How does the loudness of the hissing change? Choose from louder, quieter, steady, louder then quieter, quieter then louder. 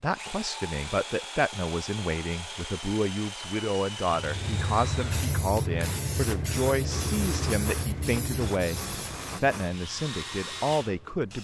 quieter.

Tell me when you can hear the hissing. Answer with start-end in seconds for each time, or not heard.
4.2-11.3.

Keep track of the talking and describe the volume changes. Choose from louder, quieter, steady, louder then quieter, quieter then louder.
steady.